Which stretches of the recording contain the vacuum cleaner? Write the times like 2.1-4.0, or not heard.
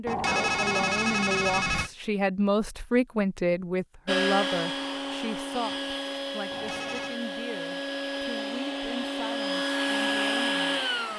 4.0-11.1.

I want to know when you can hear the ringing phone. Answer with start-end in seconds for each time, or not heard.
0.1-1.9, 6.5-7.2.